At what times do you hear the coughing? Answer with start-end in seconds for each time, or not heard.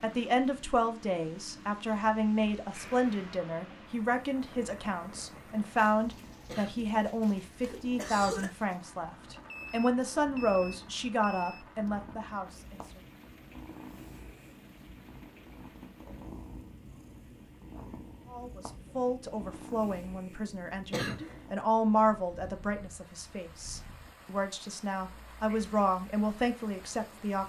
6.5-8.5, 20.9-21.4.